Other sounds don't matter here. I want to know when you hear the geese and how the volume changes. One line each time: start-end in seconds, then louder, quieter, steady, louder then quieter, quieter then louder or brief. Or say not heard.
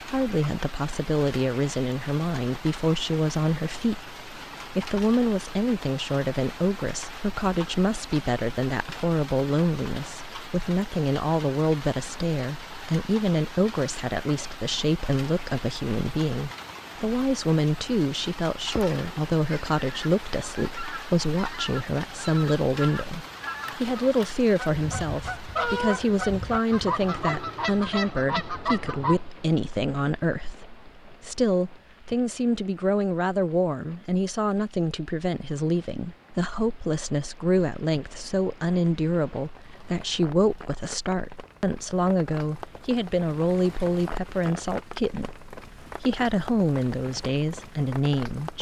18.6-29.3 louder.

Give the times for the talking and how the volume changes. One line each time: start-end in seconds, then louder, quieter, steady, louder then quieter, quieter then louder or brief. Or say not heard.
0.1-48.5 steady.